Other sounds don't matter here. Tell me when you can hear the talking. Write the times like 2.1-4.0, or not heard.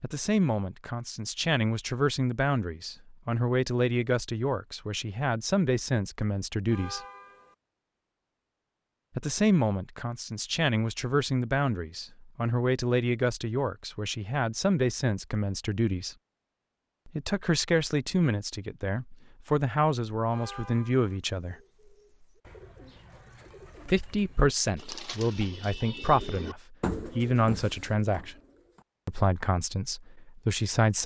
0.0-7.0, 9.2-16.1, 17.1-21.6, 23.9-28.4, 29.1-31.0.